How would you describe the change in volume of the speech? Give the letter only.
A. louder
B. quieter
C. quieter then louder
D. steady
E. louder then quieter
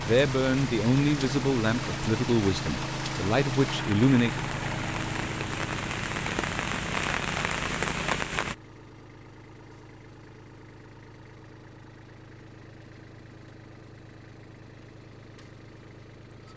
C.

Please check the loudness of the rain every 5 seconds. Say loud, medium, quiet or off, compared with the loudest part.
medium, loud, off, off.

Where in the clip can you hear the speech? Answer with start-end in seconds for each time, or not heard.
0.0-4.4.